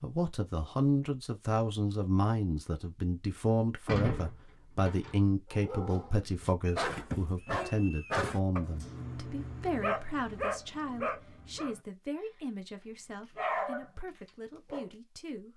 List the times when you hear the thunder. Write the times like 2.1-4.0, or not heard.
not heard.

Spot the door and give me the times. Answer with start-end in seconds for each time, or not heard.
3.9-5.2.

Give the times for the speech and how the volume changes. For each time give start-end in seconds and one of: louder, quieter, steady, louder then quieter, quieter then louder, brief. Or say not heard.
0.0-15.5 quieter.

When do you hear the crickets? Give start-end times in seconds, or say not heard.
not heard.